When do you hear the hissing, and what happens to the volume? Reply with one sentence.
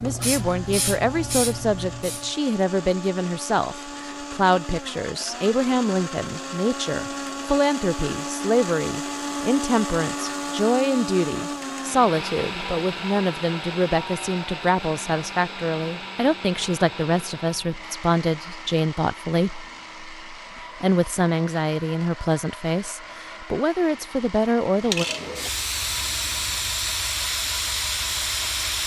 The hissing can be heard briefly from 0.0 to 2.3 s; and from 24.8 to 28.8 s, at a steady volume.